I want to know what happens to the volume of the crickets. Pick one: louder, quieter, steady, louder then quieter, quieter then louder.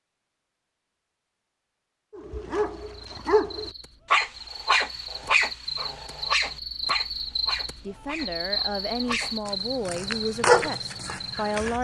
louder then quieter.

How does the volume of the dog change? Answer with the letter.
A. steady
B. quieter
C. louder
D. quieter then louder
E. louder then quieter
D.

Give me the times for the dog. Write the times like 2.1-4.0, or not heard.
2.1-11.7.